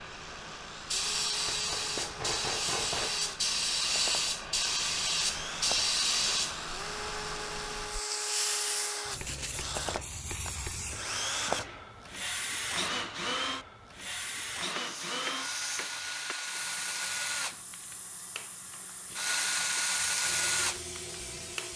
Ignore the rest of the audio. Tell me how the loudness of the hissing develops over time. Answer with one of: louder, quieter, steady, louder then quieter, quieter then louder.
quieter.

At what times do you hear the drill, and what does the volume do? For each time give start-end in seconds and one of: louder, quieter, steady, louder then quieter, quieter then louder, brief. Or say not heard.
0.0-21.7 louder.